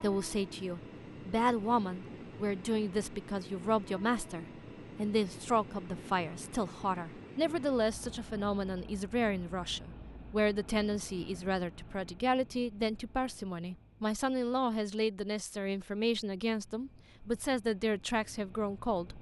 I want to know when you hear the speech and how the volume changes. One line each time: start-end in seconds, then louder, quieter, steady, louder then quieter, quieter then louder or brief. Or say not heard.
0.0-19.1 steady.